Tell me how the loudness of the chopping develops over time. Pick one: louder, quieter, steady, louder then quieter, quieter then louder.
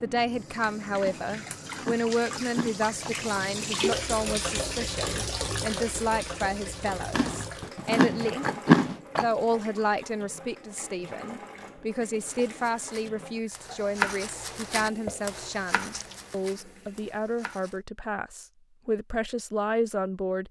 louder then quieter.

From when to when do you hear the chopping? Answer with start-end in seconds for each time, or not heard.
12.2-17.8.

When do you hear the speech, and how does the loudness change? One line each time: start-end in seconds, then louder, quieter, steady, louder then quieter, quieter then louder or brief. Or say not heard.
0.0-20.4 steady.